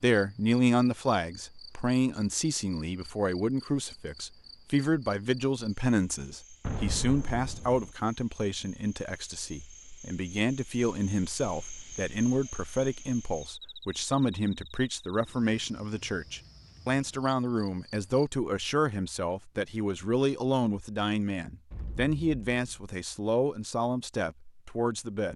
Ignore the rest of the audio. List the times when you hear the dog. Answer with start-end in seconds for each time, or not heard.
not heard.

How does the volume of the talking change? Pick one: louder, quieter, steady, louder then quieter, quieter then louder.
steady.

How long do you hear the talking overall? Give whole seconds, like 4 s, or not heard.
25 s.